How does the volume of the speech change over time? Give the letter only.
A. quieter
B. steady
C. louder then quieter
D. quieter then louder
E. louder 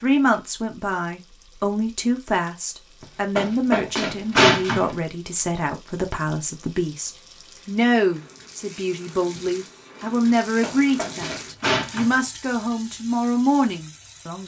B.